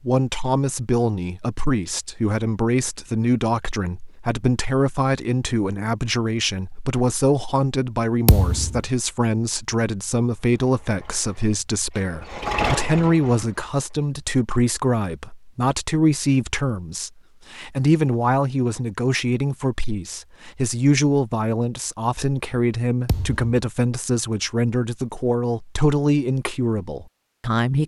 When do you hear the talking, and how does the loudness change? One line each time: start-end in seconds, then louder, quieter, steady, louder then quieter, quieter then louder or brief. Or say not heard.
0.0-27.8 steady.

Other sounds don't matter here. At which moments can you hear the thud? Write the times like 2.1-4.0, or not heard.
8.2-8.8, 23.1-23.6.